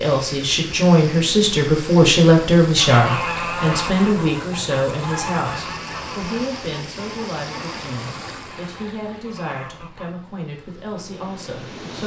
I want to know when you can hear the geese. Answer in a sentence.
The geese can be heard from 2.6 to 10.2 s.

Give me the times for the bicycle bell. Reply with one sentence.
The bicycle bell can't be heard in this clip.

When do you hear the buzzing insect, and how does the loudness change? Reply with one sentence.
You can't hear the buzzing insect here.